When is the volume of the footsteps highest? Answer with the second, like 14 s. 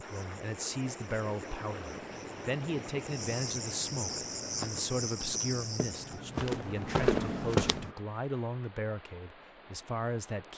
7 s.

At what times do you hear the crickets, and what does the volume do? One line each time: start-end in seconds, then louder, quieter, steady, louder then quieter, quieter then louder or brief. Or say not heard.
0.0-6.2 louder.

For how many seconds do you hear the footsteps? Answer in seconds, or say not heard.
4 s.